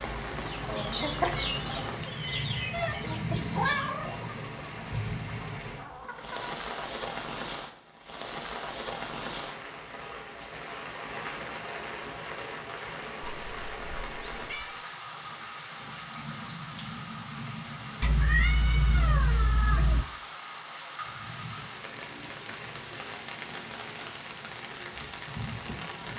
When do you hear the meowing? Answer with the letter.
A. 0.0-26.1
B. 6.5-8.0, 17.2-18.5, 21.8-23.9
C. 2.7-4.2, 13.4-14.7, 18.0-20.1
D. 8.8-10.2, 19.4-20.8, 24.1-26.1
C.